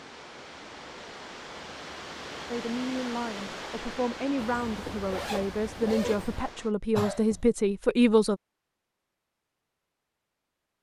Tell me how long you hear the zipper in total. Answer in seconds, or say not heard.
2 s.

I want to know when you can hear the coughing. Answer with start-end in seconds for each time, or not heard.
7.0-7.4.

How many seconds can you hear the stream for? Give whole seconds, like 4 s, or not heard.
7 s.